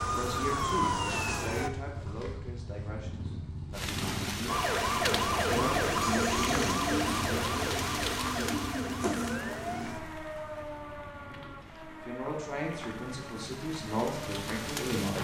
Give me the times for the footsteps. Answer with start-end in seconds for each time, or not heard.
not heard.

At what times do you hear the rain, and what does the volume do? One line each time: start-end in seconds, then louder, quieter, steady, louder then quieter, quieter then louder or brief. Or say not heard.
3.7-15.1 quieter then louder.